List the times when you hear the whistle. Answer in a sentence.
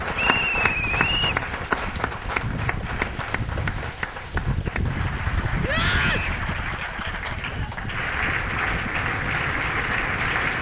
The whistle can be heard from 0.1 to 1.4 s and from 6.0 to 6.4 s.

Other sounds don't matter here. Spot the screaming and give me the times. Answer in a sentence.
You can hear the screaming from 5.6 to 6.3 s.